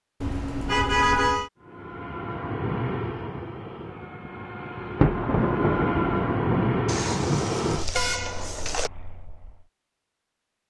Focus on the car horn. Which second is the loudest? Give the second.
1 s.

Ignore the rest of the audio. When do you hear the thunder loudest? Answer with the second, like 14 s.
5 s.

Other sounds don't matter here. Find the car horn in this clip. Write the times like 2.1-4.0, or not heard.
0.2-1.5, 6.8-8.9.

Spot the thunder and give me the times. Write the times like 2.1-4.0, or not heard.
5.0-7.6.